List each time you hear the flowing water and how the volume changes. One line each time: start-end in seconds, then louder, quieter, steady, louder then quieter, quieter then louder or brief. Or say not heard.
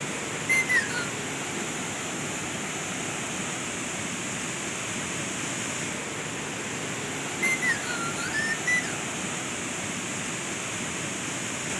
0.0-11.7 steady.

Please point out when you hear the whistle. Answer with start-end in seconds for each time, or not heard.
0.5-1.1, 7.4-8.9.